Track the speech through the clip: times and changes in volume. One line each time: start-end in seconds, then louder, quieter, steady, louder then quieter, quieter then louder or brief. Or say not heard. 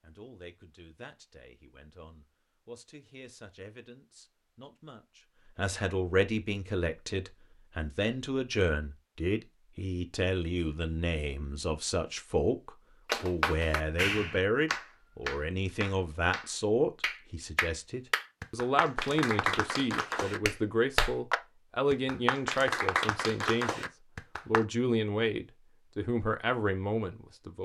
0.0-27.5 louder.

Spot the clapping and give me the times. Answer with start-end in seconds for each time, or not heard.
13.1-24.6.